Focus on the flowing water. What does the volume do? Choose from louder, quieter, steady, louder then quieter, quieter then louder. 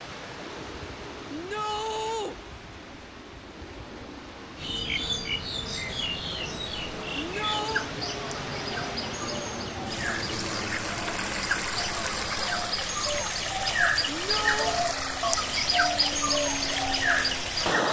louder.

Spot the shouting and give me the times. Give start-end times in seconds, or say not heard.
1.3-2.4, 7.2-7.9, 14.1-14.8.